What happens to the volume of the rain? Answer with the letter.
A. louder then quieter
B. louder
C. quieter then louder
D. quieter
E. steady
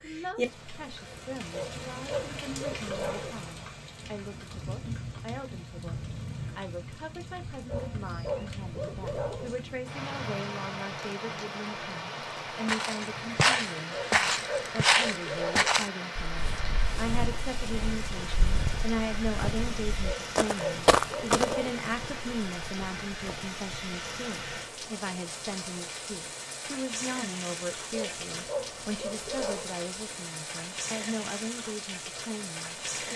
E.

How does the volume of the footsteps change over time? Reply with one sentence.
The loudness of the footsteps goes down, then up.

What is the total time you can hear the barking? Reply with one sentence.
You can hear the barking for 9 seconds altogether.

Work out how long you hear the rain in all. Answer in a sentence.
The rain can be heard for 33 seconds in total.